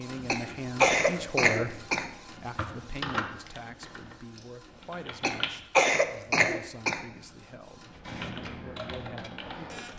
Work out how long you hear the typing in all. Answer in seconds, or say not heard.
5 s.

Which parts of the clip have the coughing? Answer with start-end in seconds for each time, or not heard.
0.2-2.0, 5.2-7.0.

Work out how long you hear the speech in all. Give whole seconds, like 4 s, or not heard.
10 s.